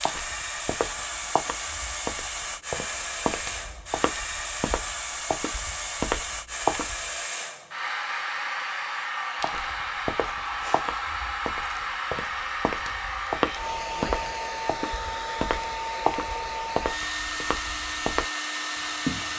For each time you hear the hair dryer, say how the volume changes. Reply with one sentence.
You can hear the hair dryer from 0.0 to 19.3 s, at a steady volume.